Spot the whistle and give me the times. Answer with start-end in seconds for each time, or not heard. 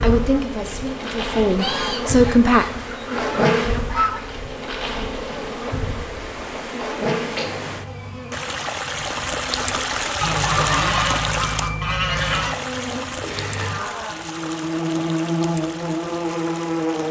not heard.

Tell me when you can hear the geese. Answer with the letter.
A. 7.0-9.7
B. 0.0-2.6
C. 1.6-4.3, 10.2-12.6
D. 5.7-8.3
C.